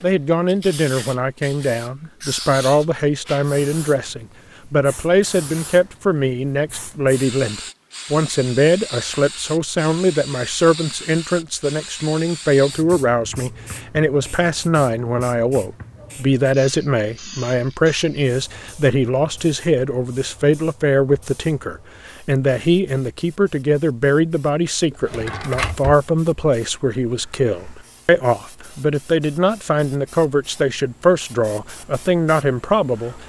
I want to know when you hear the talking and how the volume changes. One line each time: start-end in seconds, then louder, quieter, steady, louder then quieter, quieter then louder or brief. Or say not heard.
0.0-33.2 steady.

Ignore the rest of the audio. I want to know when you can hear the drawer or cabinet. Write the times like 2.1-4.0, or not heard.
24.9-26.1.